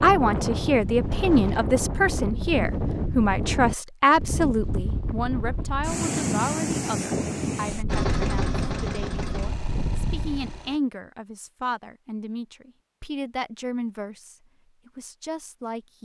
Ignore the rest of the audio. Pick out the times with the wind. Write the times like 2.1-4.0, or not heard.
0.0-10.6.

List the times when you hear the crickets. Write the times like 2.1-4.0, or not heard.
not heard.